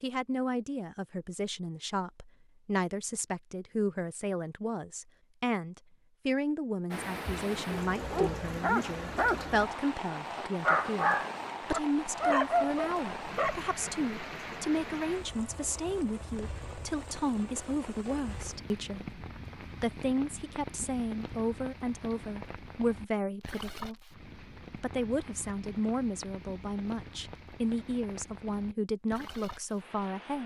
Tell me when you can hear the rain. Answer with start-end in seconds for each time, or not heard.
6.9-30.4.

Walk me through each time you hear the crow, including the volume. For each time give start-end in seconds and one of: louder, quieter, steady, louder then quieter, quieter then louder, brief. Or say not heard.
not heard.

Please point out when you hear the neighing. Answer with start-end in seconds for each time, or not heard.
not heard.